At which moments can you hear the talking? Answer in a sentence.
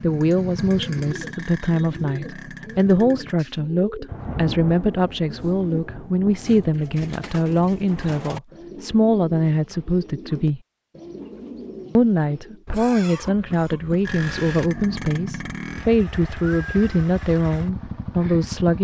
The talking can be heard from 0.0 to 10.6 s and from 11.9 to 18.7 s.